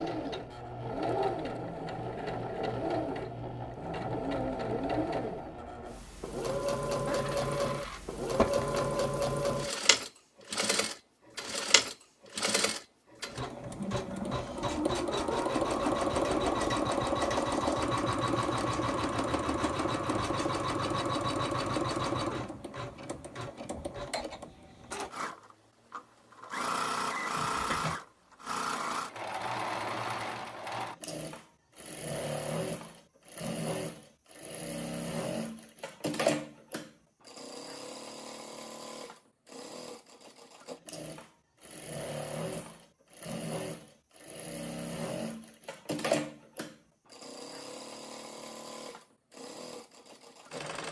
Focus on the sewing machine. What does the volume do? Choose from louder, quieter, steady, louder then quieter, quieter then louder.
quieter.